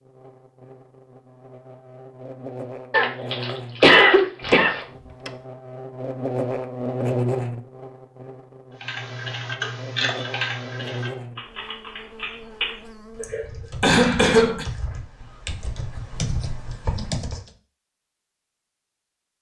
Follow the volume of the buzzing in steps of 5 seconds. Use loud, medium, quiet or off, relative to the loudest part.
medium, loud, medium, off.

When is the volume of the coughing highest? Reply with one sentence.
The loudest moment of the coughing is at 4 seconds.